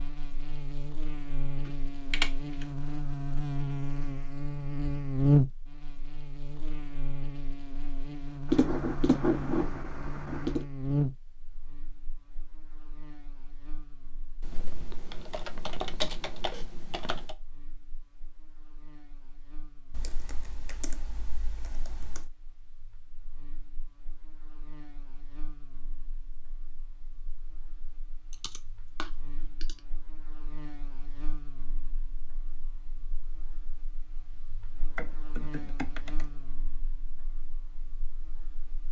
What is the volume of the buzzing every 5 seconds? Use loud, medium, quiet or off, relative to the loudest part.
medium, loud, medium, quiet, quiet, quiet, quiet, quiet.